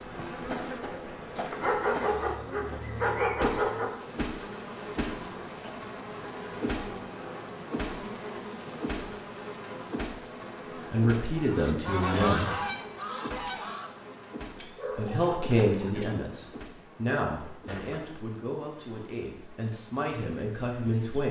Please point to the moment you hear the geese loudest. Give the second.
12 s.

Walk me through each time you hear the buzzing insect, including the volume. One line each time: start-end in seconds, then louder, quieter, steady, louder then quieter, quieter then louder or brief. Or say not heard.
0.0-21.2 quieter.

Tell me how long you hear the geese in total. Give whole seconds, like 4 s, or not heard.
3 s.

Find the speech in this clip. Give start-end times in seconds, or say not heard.
10.8-12.5, 14.9-21.2.